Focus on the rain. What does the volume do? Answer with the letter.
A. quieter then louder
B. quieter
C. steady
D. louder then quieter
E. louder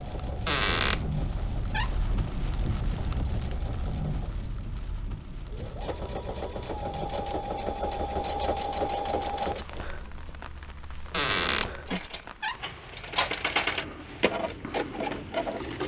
B.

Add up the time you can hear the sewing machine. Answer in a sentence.
The sewing machine can be heard for 16 seconds in total.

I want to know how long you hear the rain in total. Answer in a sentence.
You can hear the rain for 16 seconds altogether.